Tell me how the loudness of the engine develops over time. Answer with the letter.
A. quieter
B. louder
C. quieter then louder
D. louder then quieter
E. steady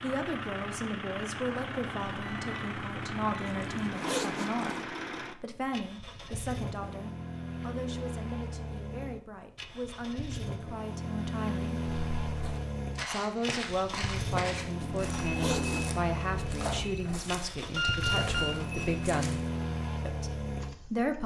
E.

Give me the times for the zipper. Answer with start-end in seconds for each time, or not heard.
3.5-4.8, 14.8-16.0.